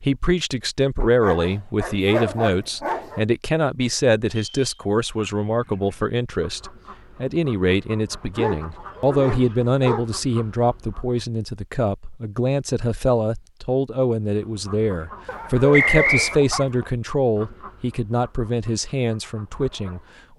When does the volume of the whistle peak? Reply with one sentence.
The volume of the whistle peaks at 16 seconds.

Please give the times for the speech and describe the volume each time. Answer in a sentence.
You can hear the speech from 0.0 to 20.0 s, at a steady volume.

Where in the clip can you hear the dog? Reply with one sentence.
The dog can be heard from 1.0 to 3.2 s, from 8.3 to 10.1 s and from 15.2 to 16.9 s.